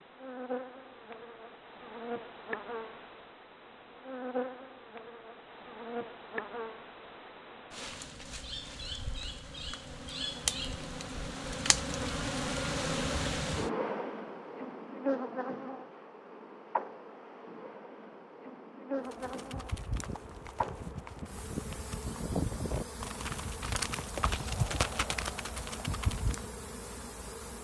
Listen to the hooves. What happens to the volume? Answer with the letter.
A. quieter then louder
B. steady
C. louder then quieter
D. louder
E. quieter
D.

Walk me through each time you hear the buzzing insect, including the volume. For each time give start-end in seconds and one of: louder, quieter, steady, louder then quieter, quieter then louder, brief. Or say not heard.
0.0-27.5 louder then quieter.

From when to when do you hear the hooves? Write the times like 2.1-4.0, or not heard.
19.1-26.5.